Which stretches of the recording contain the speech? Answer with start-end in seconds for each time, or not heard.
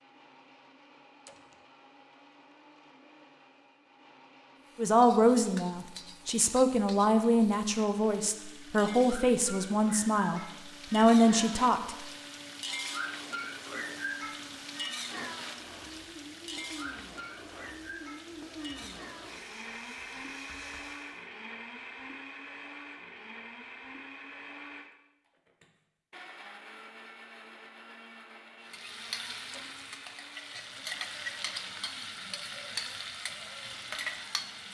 4.8-11.9.